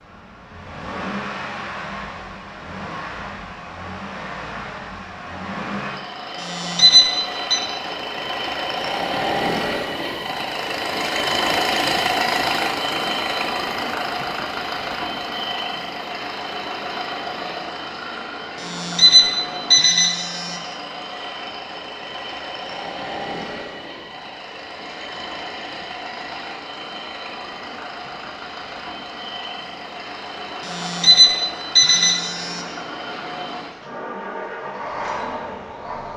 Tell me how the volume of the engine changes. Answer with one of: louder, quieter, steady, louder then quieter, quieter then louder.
louder then quieter.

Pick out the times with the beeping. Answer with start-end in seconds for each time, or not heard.
6.4-7.6, 18.6-20.6, 30.6-32.6.